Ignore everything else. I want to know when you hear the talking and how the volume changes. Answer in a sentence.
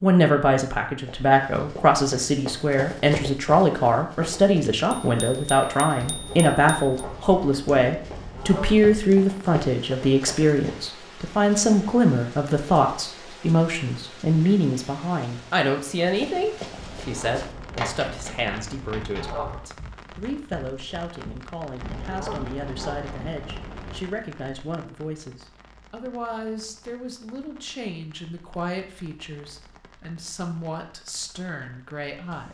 You can hear the talking from 0.0 to 32.5 s, getting quieter.